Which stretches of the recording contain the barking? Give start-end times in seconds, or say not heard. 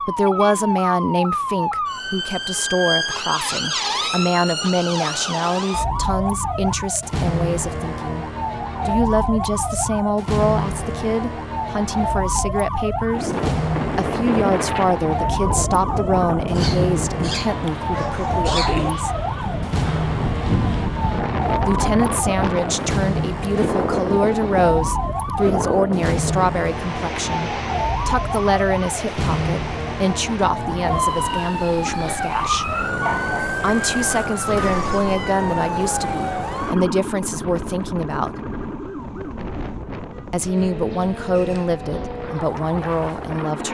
16.6-18.9, 31.2-33.5.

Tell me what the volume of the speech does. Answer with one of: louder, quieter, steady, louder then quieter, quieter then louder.
steady.